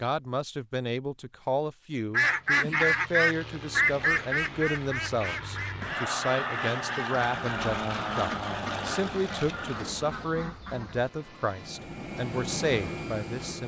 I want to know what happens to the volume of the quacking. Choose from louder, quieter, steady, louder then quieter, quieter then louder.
quieter.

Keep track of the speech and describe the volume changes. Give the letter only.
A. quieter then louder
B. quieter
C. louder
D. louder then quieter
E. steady
E.